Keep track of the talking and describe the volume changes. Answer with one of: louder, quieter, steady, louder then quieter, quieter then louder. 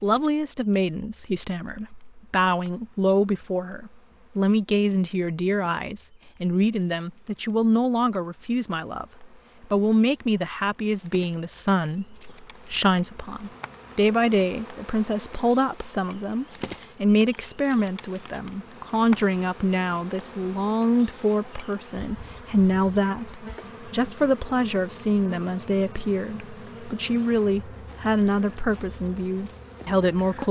steady.